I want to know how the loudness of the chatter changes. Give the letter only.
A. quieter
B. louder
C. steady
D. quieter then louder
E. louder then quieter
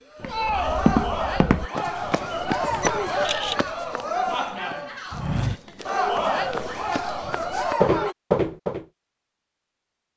C.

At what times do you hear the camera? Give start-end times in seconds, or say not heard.
2.8-3.7.